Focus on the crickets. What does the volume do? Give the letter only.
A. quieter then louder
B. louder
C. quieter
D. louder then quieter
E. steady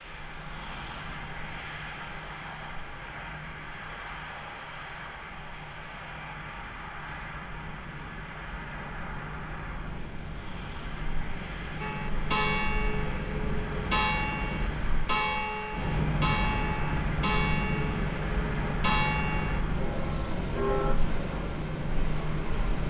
B.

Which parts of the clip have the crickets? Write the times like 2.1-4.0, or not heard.
0.0-22.8.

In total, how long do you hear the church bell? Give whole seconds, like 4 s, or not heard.
9 s.